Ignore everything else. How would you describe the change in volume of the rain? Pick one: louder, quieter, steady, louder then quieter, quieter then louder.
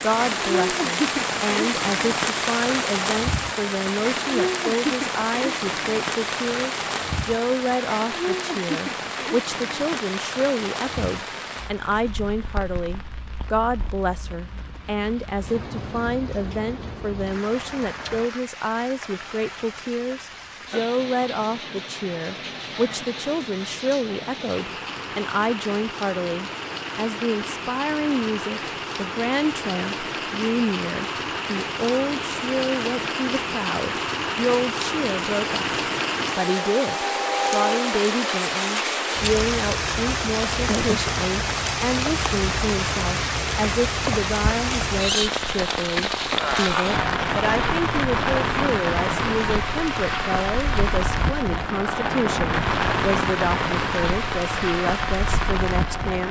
quieter then louder.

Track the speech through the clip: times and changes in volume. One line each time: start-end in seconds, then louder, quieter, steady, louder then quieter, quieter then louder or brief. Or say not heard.
0.0-56.2 steady.